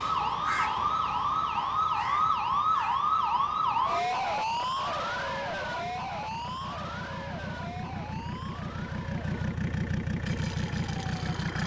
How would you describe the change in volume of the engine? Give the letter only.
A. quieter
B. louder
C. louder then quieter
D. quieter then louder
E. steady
B.